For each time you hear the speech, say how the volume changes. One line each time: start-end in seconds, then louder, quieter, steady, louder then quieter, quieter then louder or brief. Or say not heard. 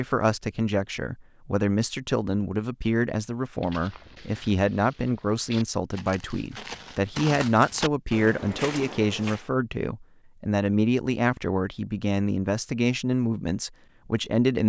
0.0-14.6 steady.